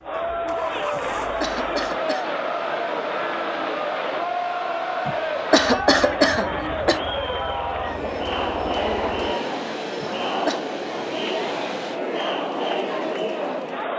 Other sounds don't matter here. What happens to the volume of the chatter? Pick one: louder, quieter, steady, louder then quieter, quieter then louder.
steady.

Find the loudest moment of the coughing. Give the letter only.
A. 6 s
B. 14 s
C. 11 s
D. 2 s
A.